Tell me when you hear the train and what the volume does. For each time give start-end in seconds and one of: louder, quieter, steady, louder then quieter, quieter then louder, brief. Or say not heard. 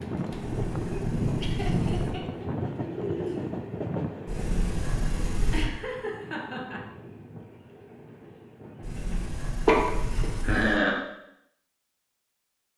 0.0-9.3 quieter.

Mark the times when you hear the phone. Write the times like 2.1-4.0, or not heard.
not heard.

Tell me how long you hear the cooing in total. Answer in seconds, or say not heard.
4 s.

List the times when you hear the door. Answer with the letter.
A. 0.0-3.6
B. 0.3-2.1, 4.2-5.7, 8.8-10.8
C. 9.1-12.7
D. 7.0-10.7
B.